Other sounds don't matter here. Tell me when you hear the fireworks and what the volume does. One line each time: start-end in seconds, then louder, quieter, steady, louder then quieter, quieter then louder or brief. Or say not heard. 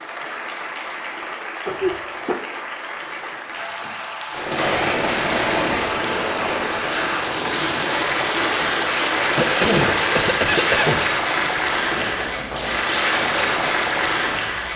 4.3-14.6 quieter.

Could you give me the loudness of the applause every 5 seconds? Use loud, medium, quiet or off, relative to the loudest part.
medium, loud, loud.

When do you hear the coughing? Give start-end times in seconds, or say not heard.
1.6-2.4, 9.3-11.2.